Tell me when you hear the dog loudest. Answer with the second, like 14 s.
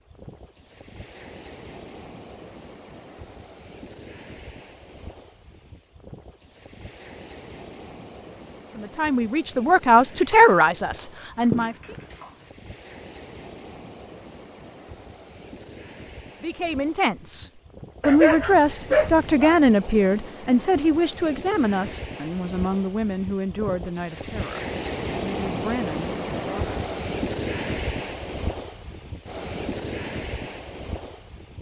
19 s.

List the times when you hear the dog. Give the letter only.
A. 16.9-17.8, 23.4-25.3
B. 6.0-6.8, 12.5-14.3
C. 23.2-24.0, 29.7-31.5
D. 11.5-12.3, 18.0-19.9
D.